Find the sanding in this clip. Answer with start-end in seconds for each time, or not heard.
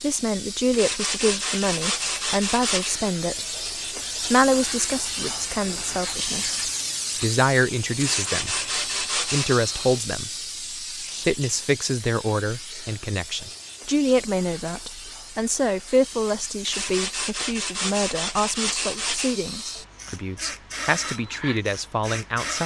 0.7-3.0, 8.0-9.6, 16.6-19.4.